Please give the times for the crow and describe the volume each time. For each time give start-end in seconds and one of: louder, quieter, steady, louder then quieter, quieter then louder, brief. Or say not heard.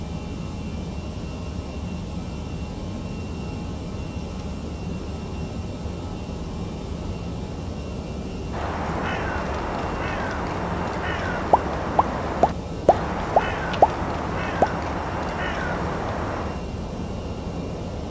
8.5-16.6 steady.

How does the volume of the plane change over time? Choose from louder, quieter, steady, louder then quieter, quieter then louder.
steady.